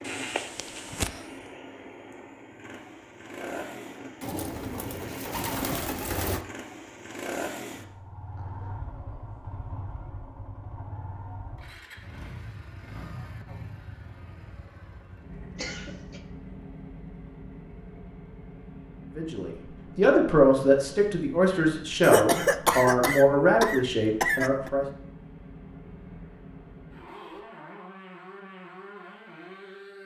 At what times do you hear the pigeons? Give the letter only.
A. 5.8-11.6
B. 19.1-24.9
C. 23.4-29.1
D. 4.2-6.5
D.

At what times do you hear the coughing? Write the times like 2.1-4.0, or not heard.
0.0-1.2, 15.6-16.2, 22.0-24.7.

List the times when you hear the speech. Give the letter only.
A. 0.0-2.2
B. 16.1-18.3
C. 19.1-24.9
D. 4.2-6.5
C.